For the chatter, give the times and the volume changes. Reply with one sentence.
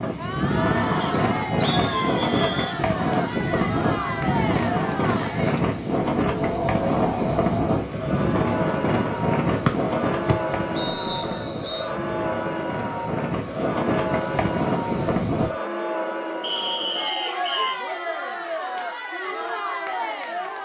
The chatter can be heard from 0.0 to 20.6 s, at a steady volume.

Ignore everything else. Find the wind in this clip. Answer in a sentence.
You can hear the wind from 0.0 to 15.5 s.